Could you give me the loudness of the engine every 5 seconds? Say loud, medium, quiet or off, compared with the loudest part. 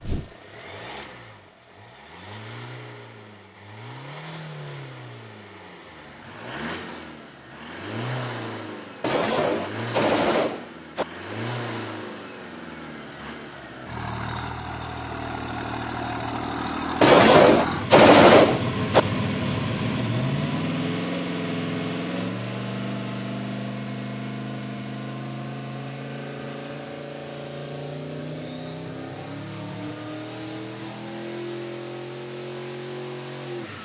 medium, medium, medium, loud, loud, medium, medium.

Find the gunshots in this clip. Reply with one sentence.
You can hear the gunshots from 9.0 to 11.1 s and from 17.0 to 19.1 s.